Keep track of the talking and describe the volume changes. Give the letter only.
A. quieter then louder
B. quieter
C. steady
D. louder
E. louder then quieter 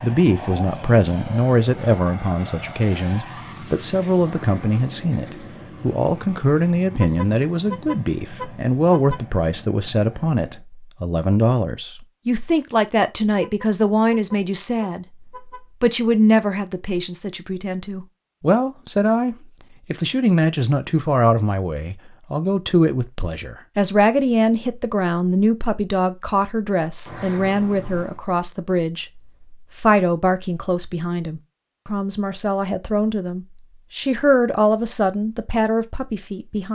C.